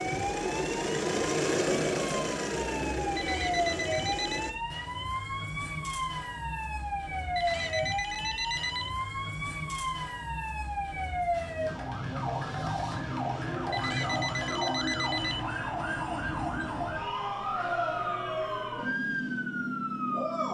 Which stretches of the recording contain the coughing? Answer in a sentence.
The coughing can't be heard in this clip.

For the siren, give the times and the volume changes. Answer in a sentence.
The siren can be heard from 0.0 to 20.4 s, at a steady volume.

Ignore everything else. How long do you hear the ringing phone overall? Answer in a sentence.
You can hear the ringing phone for 5 seconds altogether.